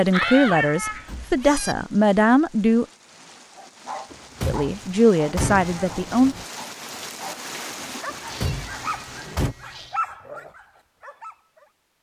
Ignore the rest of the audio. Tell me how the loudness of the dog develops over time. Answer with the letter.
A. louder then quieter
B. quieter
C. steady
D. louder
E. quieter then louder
E.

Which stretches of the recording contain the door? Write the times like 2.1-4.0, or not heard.
0.1-1.4, 4.1-5.8, 8.1-9.6.